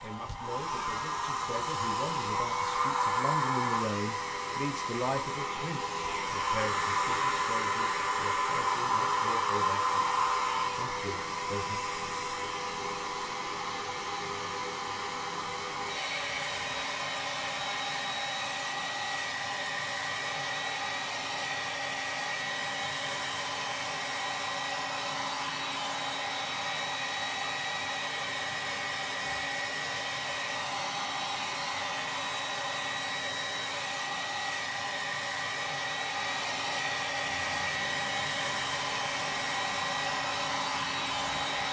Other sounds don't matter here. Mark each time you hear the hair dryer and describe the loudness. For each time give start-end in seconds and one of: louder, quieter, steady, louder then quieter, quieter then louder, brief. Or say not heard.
0.0-41.6 steady.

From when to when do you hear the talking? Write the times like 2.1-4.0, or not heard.
0.0-11.8.